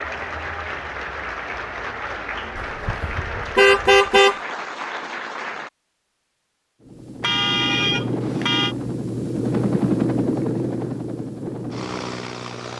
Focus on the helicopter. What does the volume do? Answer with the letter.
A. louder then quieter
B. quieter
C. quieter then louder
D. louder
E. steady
A.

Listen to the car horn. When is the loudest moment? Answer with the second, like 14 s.
4 s.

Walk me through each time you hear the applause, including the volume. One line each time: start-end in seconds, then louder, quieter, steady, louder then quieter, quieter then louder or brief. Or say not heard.
0.0-5.7 steady.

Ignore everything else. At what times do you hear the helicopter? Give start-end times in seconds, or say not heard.
6.8-12.7.